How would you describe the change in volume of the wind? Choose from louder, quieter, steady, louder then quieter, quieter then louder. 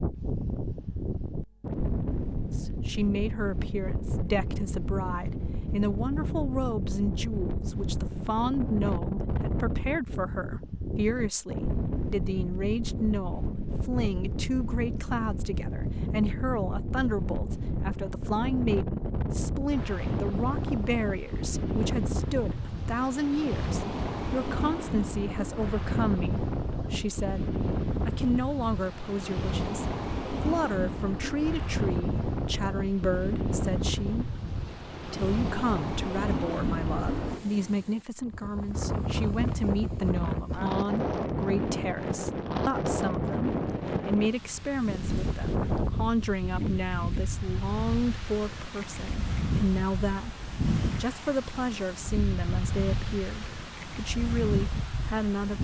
steady.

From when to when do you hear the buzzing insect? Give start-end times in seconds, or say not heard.
not heard.